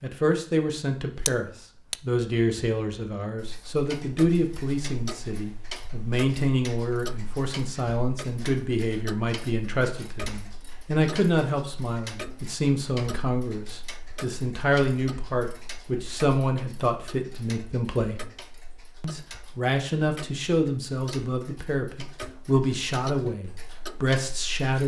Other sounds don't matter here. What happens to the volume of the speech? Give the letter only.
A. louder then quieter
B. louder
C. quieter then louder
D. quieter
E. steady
E.